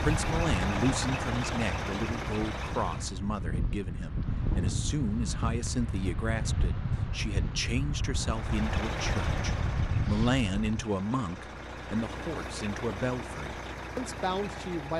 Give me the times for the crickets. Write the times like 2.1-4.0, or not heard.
not heard.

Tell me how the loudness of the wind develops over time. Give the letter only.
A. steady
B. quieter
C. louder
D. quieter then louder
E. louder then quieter
A.